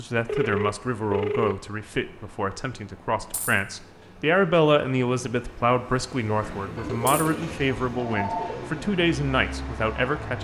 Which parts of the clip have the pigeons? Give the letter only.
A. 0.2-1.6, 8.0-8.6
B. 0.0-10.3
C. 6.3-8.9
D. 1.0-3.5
C.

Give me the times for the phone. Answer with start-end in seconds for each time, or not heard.
0.2-1.6, 8.0-8.6.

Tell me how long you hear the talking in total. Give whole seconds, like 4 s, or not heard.
10 s.